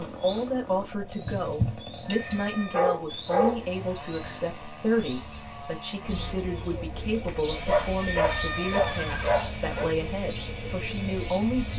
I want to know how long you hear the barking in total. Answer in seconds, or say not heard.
4 s.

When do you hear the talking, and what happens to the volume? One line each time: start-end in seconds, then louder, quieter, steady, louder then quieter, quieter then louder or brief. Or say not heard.
0.0-11.7 steady.